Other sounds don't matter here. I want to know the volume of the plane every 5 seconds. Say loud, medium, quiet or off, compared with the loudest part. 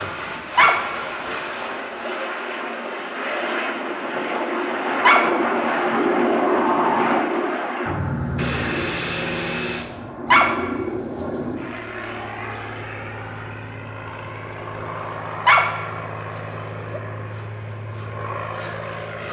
medium, loud, medium, medium.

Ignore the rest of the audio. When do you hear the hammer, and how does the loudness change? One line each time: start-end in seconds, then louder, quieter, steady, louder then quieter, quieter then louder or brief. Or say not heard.
not heard.